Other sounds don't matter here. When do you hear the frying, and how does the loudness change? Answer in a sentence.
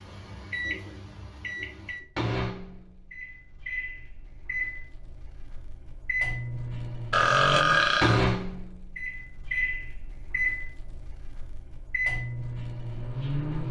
The frying can't be heard in this clip.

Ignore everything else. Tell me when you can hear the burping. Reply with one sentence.
You can hear the burping from 7.1 to 8.2 s.